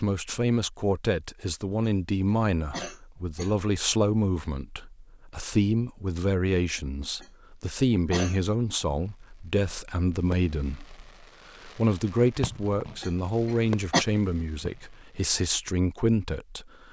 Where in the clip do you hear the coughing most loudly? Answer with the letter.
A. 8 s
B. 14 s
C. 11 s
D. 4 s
B.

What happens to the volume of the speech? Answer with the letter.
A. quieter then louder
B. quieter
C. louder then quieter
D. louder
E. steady
E.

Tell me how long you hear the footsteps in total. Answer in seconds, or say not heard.
not heard.